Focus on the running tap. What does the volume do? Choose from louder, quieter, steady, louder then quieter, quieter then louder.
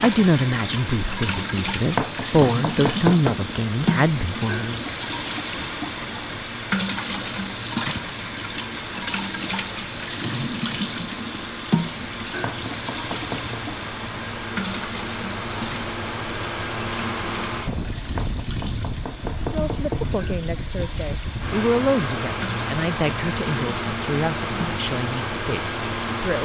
quieter.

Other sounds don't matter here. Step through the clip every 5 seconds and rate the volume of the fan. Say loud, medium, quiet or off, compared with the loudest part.
medium, medium, medium, loud, loud, loud.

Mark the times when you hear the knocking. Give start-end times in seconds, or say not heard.
1.9-3.4, 12.4-13.6, 18.1-20.1.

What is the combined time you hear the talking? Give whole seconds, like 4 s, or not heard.
12 s.